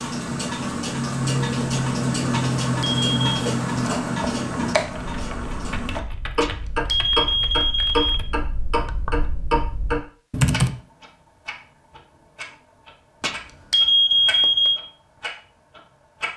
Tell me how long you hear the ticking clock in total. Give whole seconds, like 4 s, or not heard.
16 s.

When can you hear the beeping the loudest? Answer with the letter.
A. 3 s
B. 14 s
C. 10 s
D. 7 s
B.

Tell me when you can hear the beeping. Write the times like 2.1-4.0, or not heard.
2.3-3.5, 6.4-8.2, 13.2-14.8.